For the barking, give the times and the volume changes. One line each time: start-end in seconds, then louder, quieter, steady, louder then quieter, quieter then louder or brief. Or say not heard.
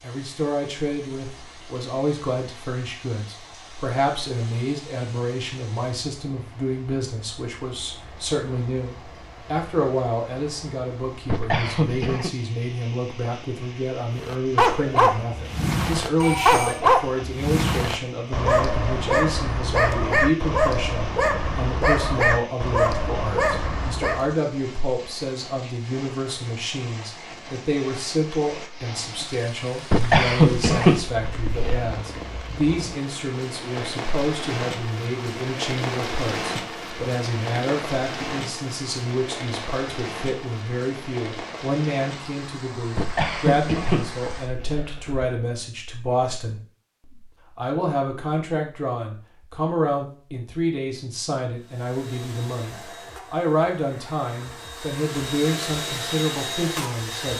14.2-24.4 steady.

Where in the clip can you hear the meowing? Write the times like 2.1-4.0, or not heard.
not heard.